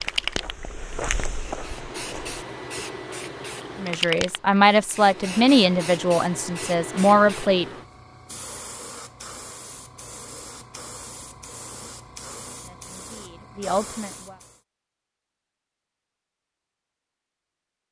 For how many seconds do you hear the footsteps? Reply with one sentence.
You can hear the footsteps for 2 seconds altogether.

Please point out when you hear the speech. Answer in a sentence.
The speech can be heard from 3.8 to 7.7 s and from 12.6 to 14.4 s.